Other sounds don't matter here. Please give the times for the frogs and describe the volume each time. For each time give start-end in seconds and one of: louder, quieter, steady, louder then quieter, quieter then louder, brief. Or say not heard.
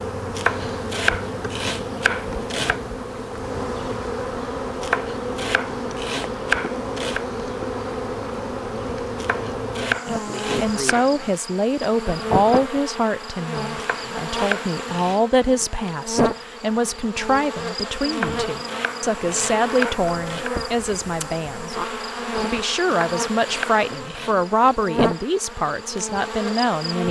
not heard.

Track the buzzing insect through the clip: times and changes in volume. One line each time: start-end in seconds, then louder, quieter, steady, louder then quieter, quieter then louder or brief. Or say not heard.
0.0-27.0 steady.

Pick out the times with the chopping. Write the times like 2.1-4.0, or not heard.
0.3-2.8, 4.8-7.2, 9.2-11.4, 13.8-15.2, 18.1-20.6, 22.9-24.4.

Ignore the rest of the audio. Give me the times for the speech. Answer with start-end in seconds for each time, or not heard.
10.1-21.8, 22.4-27.0.